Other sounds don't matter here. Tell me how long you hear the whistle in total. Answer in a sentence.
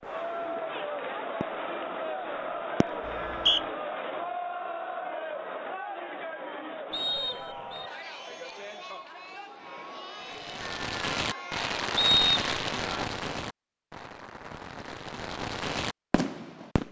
You can hear the whistle for 2 seconds altogether.